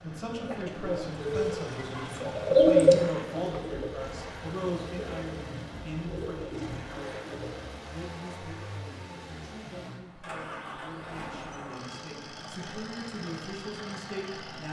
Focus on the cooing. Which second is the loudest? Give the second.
3 s.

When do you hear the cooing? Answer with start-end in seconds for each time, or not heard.
0.5-7.8.